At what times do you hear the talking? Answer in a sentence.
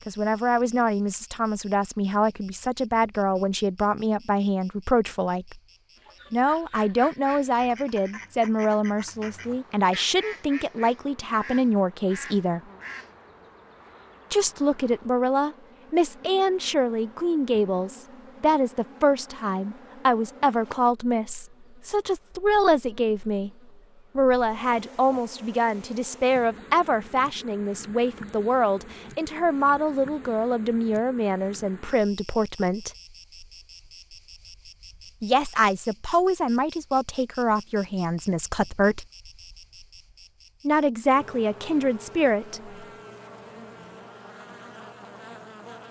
You can hear the talking from 0.1 to 5.6 s, from 6.3 to 12.6 s, from 14.3 to 23.5 s, from 24.1 to 32.9 s, from 35.2 to 39.0 s and from 40.6 to 42.8 s.